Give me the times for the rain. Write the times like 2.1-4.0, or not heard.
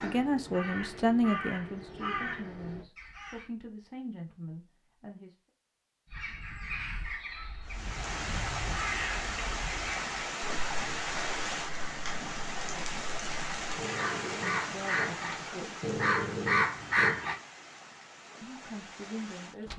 7.7-19.7.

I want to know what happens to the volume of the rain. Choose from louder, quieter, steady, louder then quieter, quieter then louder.
quieter.